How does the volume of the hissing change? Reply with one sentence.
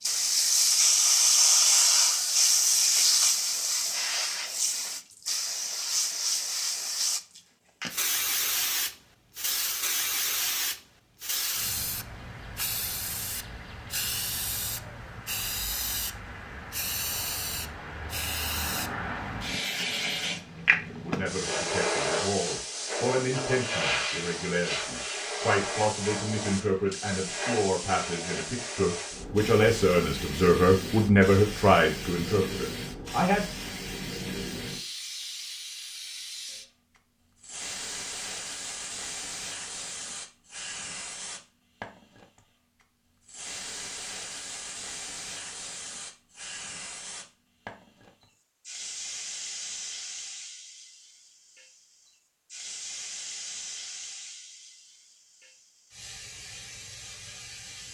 The loudness of the hissing goes down.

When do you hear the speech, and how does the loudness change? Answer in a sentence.
The speech can be heard from 20.9 to 33.5 s, getting louder.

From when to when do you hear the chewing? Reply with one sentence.
You can't hear the chewing here.